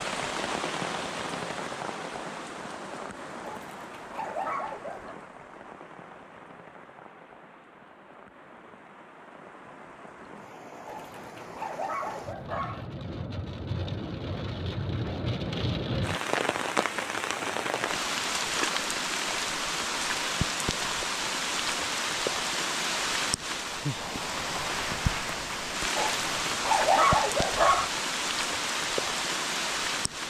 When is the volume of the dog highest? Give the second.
27 s.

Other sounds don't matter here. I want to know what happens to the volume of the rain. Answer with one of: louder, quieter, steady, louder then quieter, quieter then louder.
quieter then louder.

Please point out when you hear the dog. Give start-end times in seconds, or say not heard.
3.4-5.2, 10.8-12.8, 25.9-27.9.